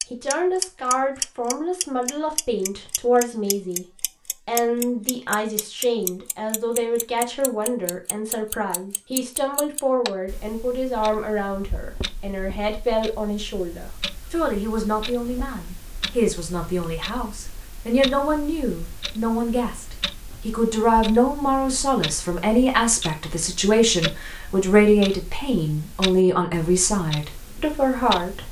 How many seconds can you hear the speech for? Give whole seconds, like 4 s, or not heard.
28 s.